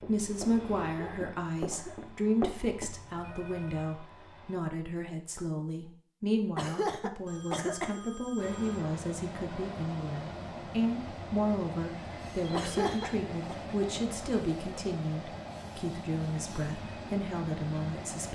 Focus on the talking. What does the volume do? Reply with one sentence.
The volume of the talking stays about the same.